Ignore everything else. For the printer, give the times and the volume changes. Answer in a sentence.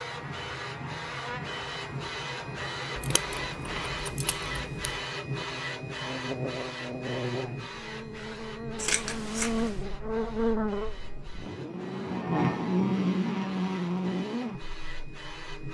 You can hear the printer from 0.0 to 15.6 s, getting quieter.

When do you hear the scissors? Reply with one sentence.
The scissors can be heard from 3.0 to 5.0 s and from 8.8 to 9.8 s.